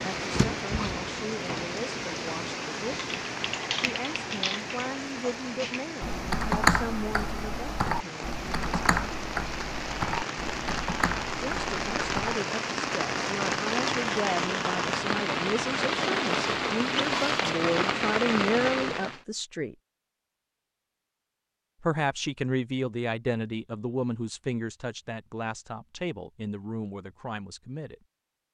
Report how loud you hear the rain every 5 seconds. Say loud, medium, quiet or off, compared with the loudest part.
medium, medium, loud, loud, off, off.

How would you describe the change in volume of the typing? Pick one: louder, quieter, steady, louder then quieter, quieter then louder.
louder then quieter.